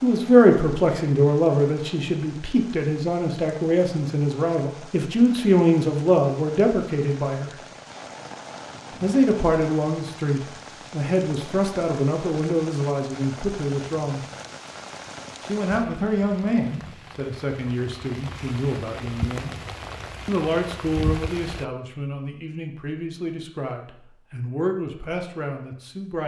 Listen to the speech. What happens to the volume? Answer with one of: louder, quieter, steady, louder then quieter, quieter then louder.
quieter.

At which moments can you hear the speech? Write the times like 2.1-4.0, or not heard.
0.0-7.6, 9.0-14.2, 15.4-19.6, 20.2-26.2.